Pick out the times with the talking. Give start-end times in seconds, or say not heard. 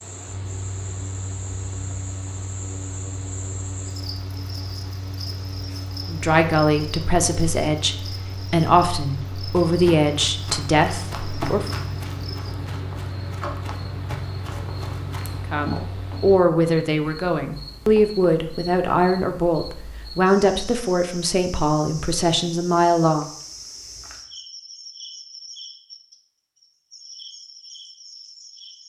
6.0-11.7, 15.5-23.3.